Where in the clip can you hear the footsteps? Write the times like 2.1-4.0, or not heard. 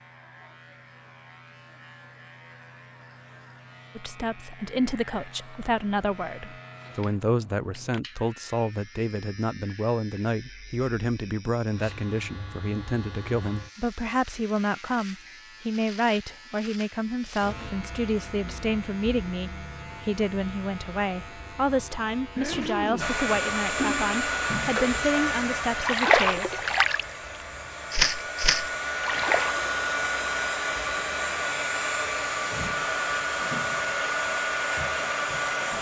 not heard.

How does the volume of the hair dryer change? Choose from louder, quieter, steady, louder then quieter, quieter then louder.
quieter then louder.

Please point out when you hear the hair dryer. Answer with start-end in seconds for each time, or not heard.
22.9-35.7.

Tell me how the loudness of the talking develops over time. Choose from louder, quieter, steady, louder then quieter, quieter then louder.
steady.